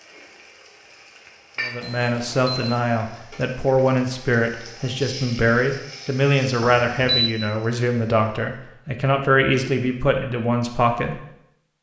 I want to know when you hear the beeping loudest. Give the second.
7 s.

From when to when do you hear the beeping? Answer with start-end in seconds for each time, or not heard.
1.8-2.8, 6.6-7.3.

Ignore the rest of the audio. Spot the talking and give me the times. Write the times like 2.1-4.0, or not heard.
1.6-11.2.